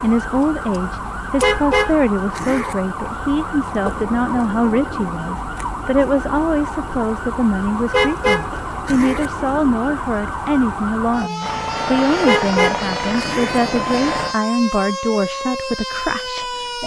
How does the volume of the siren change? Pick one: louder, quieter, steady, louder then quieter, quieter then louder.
steady.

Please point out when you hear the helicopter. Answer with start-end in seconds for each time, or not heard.
11.4-14.3.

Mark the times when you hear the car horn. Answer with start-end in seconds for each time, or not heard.
1.4-2.8, 7.9-9.3, 12.2-13.6.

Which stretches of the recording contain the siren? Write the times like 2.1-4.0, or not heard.
0.0-16.8.